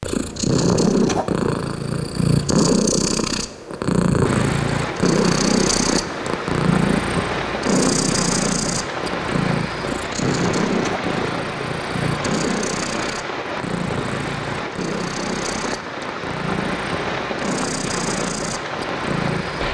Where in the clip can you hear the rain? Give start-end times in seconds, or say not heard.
4.2-19.6.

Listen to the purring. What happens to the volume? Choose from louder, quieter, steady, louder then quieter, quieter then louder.
quieter.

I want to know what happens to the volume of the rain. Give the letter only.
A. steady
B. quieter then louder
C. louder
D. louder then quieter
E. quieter
A.